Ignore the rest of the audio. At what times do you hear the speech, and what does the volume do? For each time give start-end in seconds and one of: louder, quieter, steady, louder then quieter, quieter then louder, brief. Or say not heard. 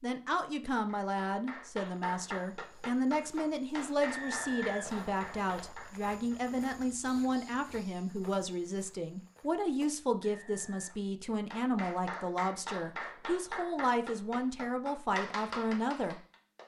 0.0-16.6 steady.